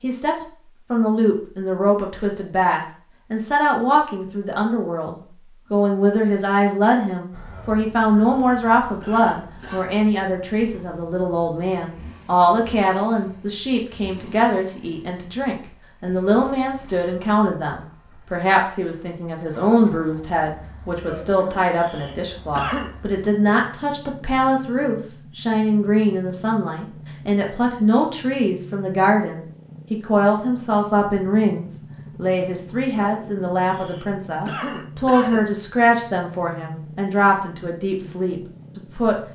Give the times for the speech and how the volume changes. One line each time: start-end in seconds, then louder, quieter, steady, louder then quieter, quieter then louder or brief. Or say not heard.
0.0-39.1 steady.